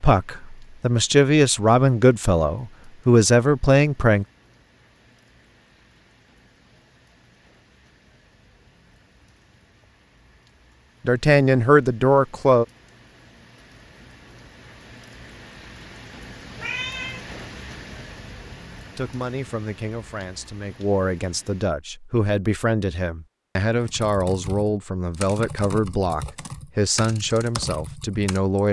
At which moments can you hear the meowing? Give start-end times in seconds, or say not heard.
16.6-17.2.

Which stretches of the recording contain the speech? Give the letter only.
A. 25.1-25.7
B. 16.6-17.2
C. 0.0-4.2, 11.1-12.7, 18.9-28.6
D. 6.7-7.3
C.